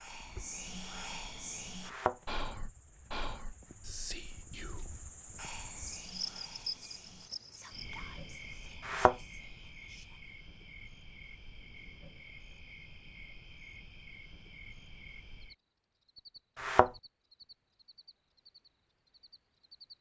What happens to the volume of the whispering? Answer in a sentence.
The loudness of the whispering goes down.